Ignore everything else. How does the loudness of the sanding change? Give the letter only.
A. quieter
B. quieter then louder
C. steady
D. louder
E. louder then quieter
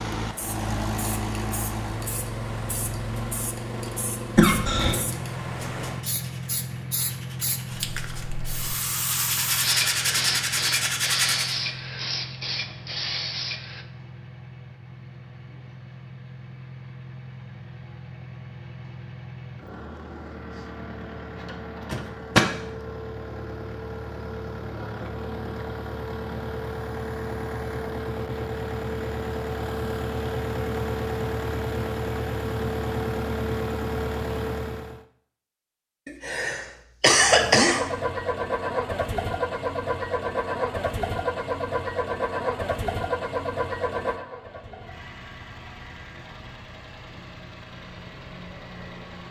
D.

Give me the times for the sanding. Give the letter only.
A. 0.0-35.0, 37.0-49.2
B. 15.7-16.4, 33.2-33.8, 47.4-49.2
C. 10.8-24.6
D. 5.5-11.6
D.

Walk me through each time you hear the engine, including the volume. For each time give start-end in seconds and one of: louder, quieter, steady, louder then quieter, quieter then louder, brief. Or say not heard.
0.0-35.0 quieter then louder
37.0-49.2 quieter.